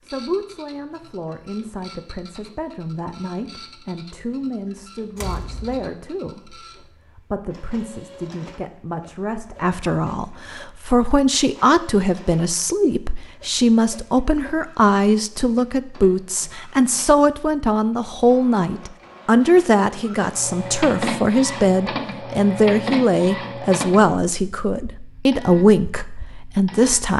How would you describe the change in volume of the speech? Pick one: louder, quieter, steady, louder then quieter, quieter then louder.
louder.